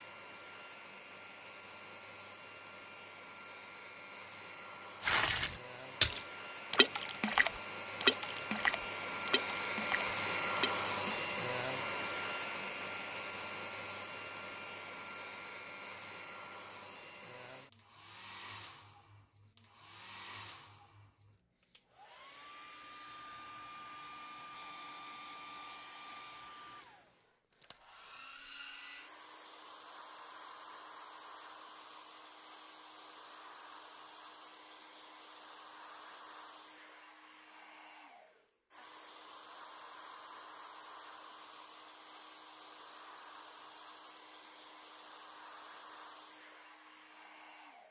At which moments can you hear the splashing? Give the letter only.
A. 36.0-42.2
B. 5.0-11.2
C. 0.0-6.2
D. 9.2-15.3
B.